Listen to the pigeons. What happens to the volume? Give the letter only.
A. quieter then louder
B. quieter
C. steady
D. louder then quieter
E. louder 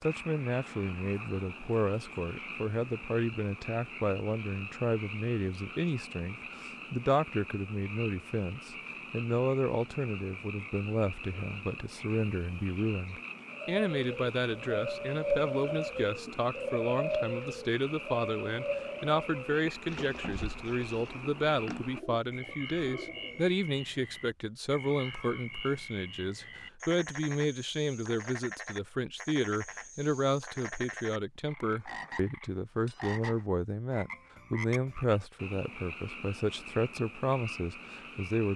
B.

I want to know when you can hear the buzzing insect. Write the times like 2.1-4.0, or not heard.
not heard.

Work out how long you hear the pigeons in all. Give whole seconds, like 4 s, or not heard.
10 s.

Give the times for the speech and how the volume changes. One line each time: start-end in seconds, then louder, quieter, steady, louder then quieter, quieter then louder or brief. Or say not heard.
0.0-38.5 steady.